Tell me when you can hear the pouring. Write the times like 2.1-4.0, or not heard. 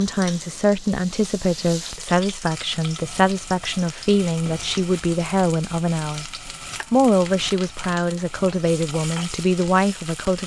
not heard.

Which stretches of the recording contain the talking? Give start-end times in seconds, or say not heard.
0.0-6.2, 6.9-10.4.